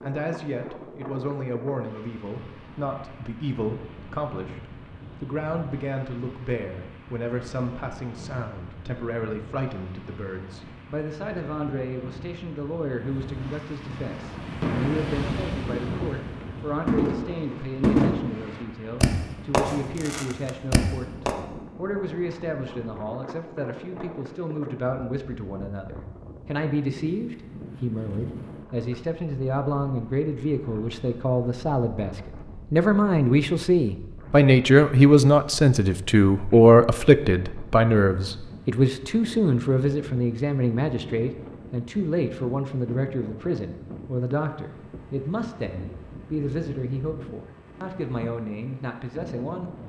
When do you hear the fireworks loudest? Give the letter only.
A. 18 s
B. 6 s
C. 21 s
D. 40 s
A.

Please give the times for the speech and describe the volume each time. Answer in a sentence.
The speech can be heard from 0.0 to 49.7 s, getting louder then quieter.